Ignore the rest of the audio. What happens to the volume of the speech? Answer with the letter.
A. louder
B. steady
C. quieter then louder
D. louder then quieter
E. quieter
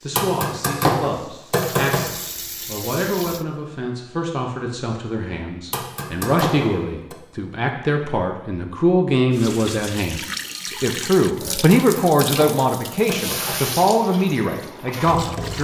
A.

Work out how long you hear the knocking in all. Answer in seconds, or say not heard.
5 s.